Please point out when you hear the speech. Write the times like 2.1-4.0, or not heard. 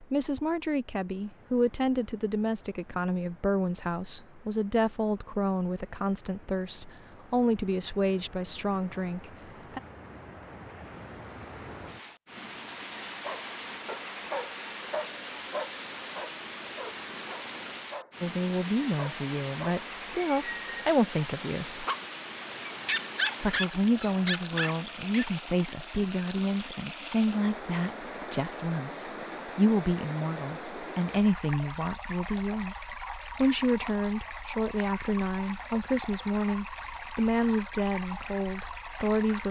0.0-9.8, 18.2-21.8, 23.4-39.4.